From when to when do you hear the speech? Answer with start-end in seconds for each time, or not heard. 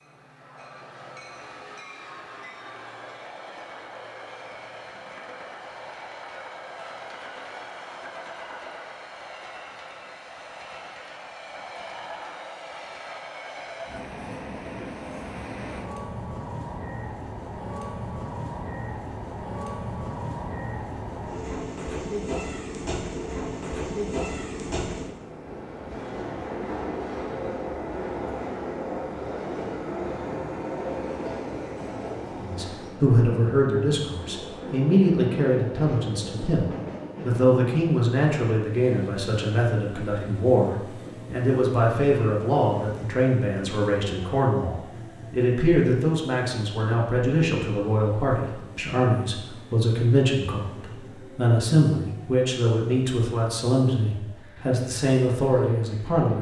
32.4-56.3.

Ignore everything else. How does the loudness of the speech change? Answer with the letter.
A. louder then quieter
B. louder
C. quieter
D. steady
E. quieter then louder
D.